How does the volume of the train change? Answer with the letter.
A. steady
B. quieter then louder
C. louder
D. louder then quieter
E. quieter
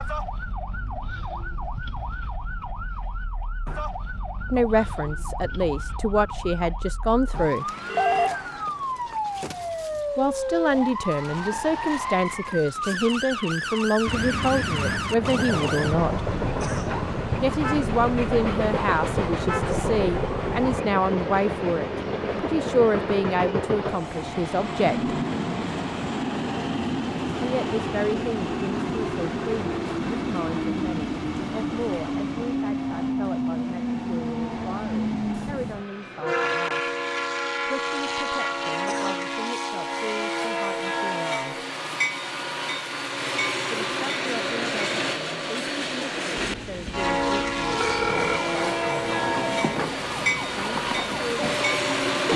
A.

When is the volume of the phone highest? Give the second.
8 s.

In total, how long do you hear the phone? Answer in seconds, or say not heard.
3 s.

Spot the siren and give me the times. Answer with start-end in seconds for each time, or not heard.
0.0-20.9, 47.6-52.3.